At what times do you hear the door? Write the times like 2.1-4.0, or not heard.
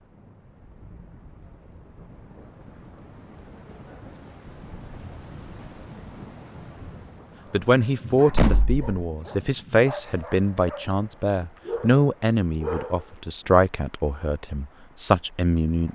8.3-9.1.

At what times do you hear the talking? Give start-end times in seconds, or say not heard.
7.5-15.9.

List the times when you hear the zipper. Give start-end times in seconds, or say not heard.
not heard.